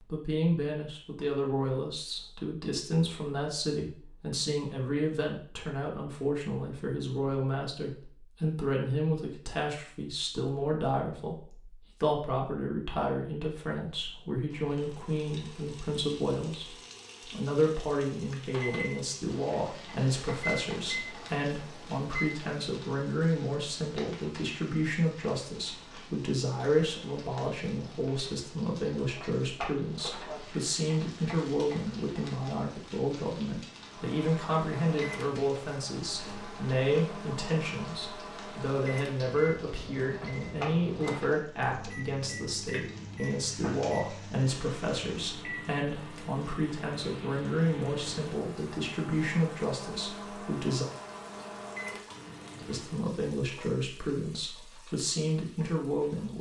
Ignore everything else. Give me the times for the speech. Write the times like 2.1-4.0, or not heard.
0.0-50.9, 52.6-56.3.